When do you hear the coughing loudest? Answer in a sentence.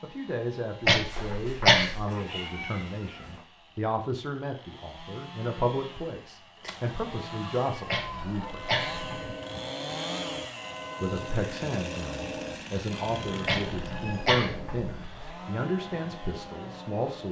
The loudest moment of the coughing is at 2 seconds.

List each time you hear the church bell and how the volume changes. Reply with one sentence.
You can hear the church bell from 8.1 to 17.2 s, getting quieter.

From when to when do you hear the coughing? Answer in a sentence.
You can hear the coughing from 0.8 to 2.1 s, from 7.8 to 9.1 s and from 13.4 to 15.3 s.